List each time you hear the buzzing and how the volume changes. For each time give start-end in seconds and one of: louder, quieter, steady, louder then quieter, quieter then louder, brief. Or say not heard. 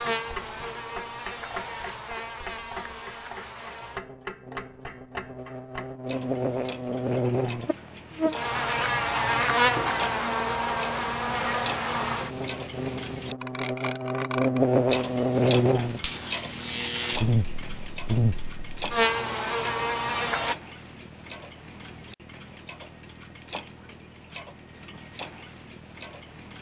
0.0-20.6 louder.